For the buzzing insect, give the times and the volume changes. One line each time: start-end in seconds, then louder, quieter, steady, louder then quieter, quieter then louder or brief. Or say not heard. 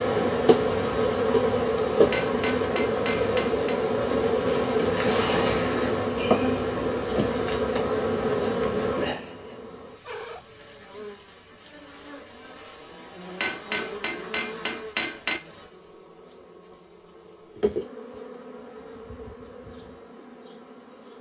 0.0-21.1 quieter.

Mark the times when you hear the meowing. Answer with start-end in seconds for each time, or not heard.
10.0-10.8.